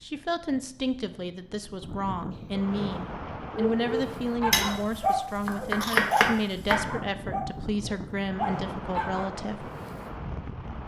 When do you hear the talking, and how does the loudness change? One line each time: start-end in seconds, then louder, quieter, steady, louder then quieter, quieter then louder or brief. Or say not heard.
0.0-9.7 steady.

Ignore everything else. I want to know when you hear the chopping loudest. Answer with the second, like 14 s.
6 s.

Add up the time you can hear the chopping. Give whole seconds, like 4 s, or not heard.
2 s.